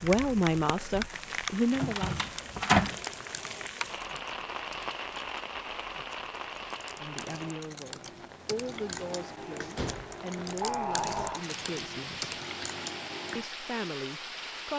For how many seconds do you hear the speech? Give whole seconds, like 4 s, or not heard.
9 s.